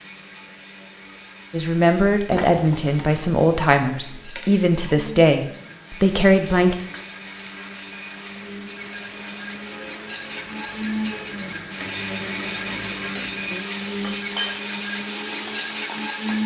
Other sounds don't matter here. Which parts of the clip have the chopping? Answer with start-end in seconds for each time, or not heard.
not heard.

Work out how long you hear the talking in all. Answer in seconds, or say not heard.
5 s.